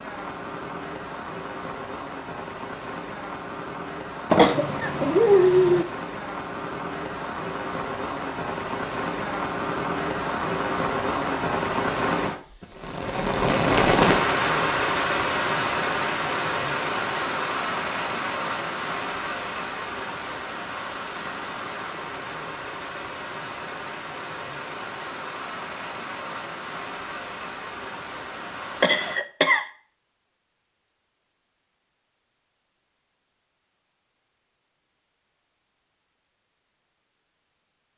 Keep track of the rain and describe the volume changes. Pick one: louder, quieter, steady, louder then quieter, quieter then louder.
louder then quieter.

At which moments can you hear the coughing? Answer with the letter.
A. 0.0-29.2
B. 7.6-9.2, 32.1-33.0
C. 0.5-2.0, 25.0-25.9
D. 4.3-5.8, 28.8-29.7
D.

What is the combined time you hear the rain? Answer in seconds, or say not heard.
29 s.